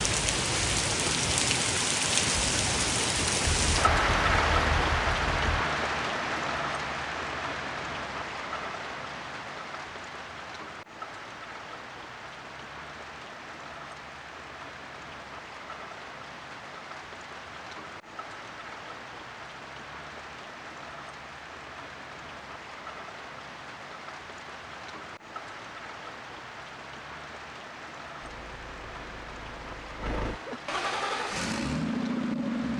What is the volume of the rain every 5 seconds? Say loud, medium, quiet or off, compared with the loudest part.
loud, medium, quiet, quiet, quiet, quiet, quiet.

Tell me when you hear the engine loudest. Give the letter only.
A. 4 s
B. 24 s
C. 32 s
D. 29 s
C.